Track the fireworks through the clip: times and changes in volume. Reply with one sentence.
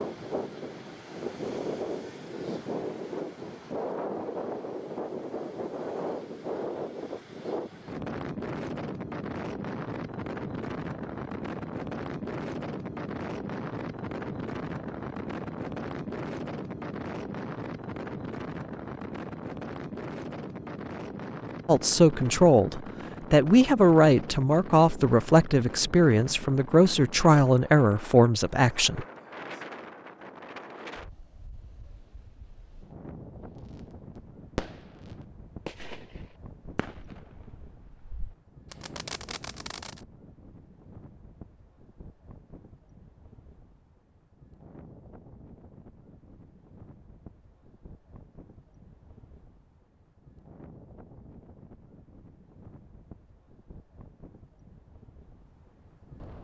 The fireworks can be heard from 34.5 to 40.0 s, getting quieter then louder.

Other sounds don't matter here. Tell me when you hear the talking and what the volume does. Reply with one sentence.
The talking can be heard from 21.6 to 29.1 s, at a steady volume.